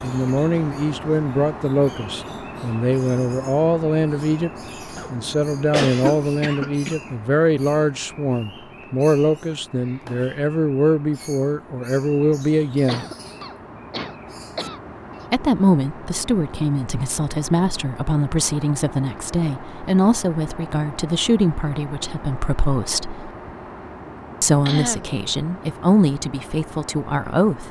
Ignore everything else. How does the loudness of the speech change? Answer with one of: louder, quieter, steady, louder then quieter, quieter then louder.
steady.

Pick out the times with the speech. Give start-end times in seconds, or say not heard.
0.0-4.5, 5.1-13.1, 15.3-23.3, 24.4-27.6.